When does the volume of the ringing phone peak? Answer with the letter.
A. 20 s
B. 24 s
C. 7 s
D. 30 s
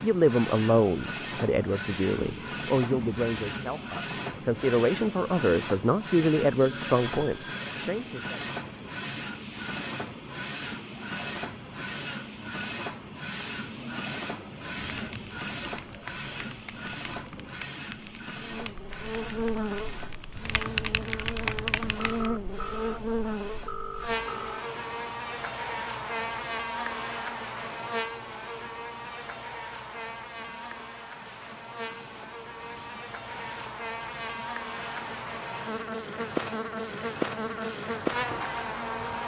C.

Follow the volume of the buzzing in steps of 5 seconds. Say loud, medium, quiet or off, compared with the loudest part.
off, off, off, loud, loud, loud, medium, loud.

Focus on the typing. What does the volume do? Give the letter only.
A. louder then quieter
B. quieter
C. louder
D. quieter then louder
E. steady
C.